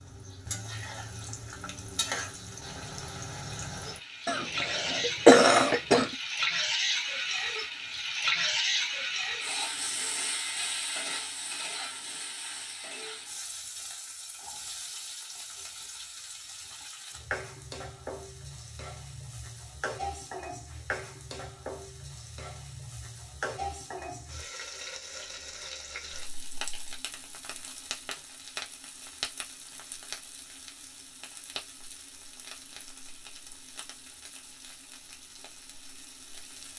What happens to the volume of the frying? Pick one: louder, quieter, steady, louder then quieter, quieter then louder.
quieter.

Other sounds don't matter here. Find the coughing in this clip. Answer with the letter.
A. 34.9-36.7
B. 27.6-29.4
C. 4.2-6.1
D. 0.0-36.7
C.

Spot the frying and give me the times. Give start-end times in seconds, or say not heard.
0.0-36.7.